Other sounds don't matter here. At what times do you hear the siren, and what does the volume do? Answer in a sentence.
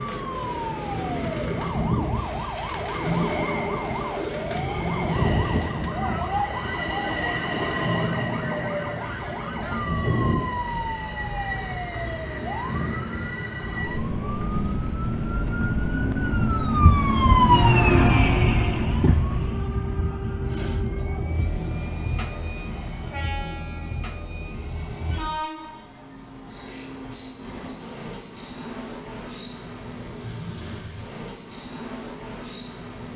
The siren can be heard from 0.0 to 25.4 s, getting louder then quieter.